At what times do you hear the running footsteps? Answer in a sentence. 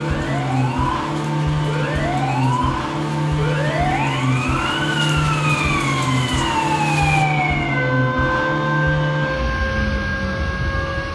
The running footsteps can't be heard in this clip.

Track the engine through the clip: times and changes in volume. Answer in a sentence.
You can hear the engine from 0.0 to 11.1 s, at a steady volume.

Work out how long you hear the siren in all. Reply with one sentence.
The siren can be heard for 11 seconds in total.